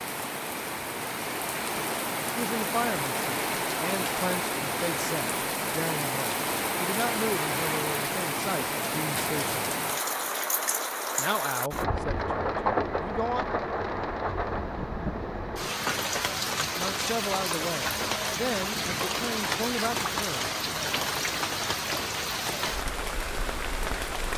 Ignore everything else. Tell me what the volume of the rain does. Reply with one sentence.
The volume of the rain stays about the same.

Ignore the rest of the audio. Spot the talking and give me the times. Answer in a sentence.
The talking can be heard from 2.4 to 9.7 s, from 11.2 to 13.4 s and from 16.6 to 20.4 s.